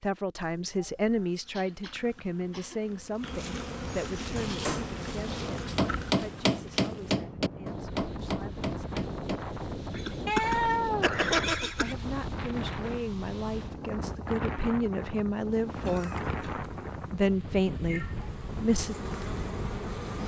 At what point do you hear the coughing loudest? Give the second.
11 s.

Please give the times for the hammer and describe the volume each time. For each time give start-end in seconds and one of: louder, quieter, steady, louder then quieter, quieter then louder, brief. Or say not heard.
4.3-9.5 louder then quieter.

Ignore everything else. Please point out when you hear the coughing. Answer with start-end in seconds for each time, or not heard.
0.6-2.9, 9.9-11.9, 15.8-16.6.